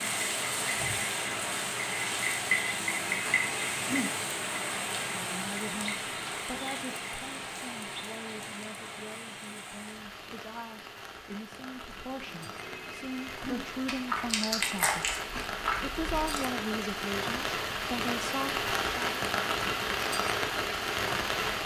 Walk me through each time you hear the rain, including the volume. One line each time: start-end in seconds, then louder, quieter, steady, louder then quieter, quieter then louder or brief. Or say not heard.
0.0-21.6 quieter then louder.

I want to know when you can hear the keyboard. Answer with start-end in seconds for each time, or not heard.
not heard.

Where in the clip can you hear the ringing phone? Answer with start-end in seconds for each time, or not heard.
2.7-4.1, 12.2-13.7.